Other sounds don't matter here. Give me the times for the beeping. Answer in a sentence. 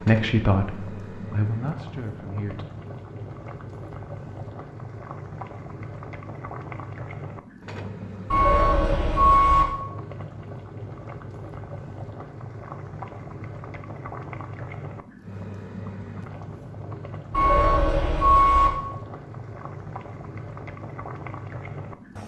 You can hear the beeping from 8.3 to 9.7 s and from 17.3 to 18.7 s.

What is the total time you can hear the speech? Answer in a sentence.
You can hear the speech for 3 seconds altogether.